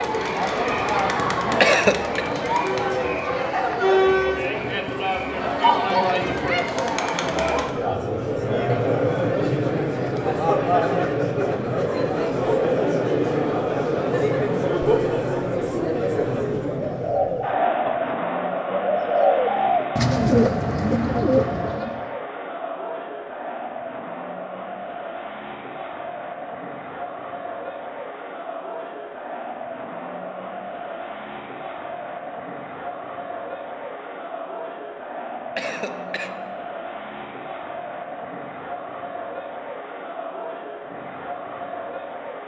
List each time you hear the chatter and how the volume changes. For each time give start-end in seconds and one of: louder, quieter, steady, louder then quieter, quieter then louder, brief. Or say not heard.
0.0-42.4 quieter.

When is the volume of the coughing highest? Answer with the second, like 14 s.
2 s.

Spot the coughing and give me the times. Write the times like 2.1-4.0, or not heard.
1.6-2.2, 35.5-36.3.